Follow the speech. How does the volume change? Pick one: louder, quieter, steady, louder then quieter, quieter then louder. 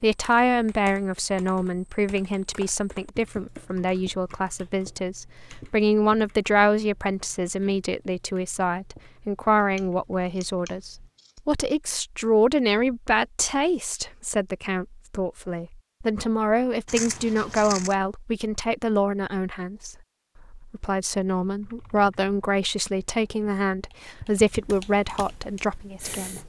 steady.